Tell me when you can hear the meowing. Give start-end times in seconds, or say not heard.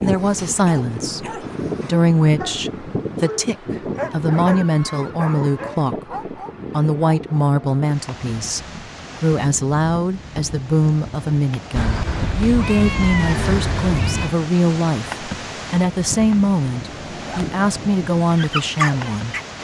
0.2-0.7, 11.8-14.3.